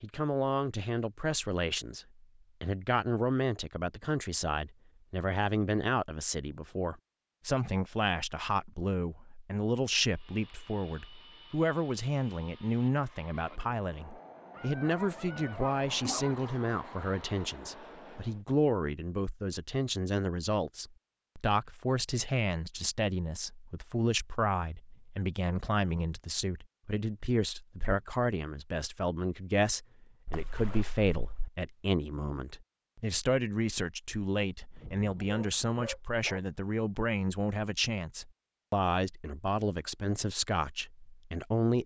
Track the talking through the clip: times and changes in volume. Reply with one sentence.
The talking can be heard from 0.0 to 41.8 s, at a steady volume.